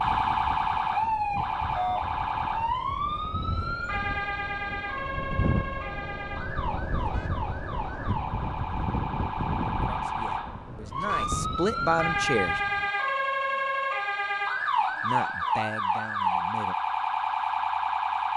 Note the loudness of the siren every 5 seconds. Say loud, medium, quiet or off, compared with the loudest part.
loud, medium, loud, loud.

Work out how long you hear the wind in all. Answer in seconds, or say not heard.
13 s.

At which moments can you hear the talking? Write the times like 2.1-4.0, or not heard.
9.7-12.6, 15.0-16.8.